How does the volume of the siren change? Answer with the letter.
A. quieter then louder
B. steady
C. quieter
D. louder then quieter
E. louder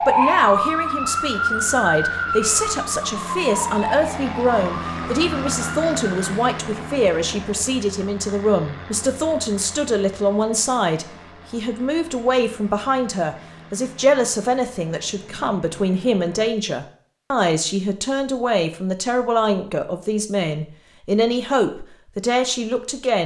C.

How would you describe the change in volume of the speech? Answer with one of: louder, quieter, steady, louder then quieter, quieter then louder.
steady.